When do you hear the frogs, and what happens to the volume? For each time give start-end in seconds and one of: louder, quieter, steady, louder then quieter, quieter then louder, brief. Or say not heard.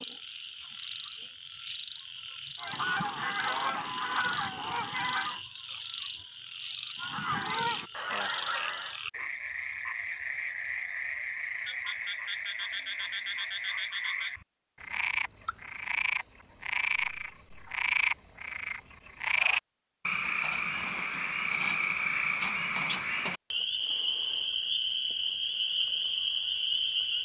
0.0-27.2 louder.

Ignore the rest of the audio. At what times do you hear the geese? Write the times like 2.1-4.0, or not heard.
2.6-5.4, 7.0-9.0.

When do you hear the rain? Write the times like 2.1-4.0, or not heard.
not heard.